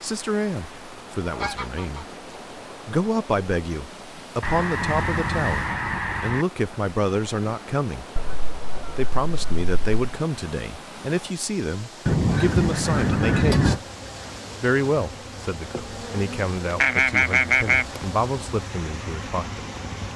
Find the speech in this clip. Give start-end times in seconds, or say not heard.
0.0-2.0, 2.9-8.1, 8.9-13.8, 14.6-19.6.